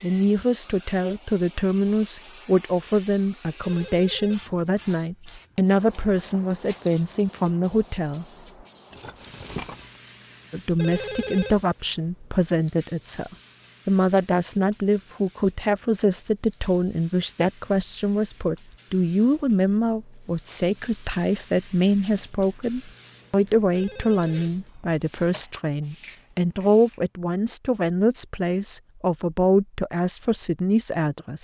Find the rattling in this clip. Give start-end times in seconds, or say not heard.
8.9-10.0.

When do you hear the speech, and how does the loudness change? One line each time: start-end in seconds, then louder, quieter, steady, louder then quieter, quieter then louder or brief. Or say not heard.
0.0-8.2 steady
10.5-31.4 steady.